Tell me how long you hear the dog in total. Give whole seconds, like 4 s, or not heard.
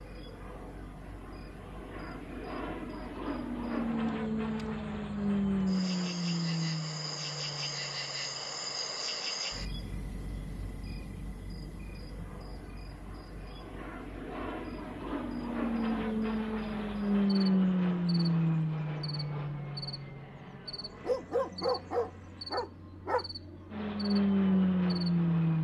2 s.